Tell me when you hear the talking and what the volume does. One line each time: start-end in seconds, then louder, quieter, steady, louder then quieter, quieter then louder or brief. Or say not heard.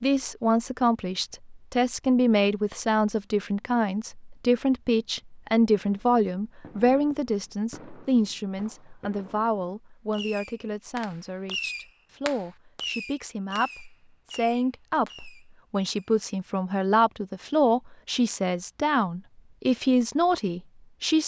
0.0-21.2 quieter then louder.